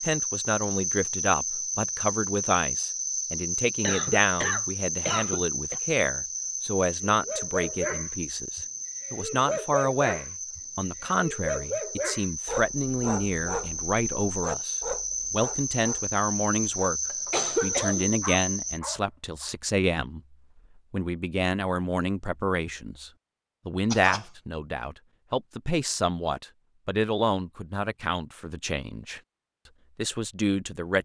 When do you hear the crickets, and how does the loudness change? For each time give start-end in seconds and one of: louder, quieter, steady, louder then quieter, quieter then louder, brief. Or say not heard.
0.0-18.8 quieter then louder.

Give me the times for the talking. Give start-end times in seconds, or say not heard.
0.0-17.0, 17.6-20.2, 20.9-29.2, 29.9-31.0.